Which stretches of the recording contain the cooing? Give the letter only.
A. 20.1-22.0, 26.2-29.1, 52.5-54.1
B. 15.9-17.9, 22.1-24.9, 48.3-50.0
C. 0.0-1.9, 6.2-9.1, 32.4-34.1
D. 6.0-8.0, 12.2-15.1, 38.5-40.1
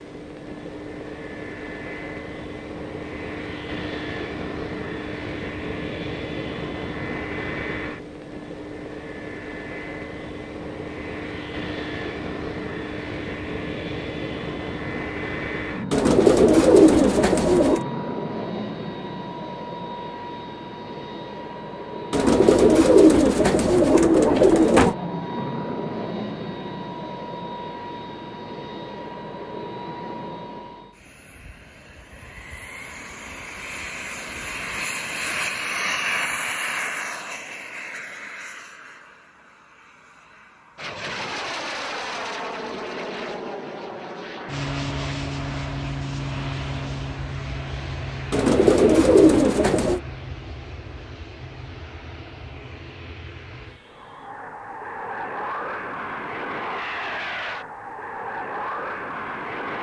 B.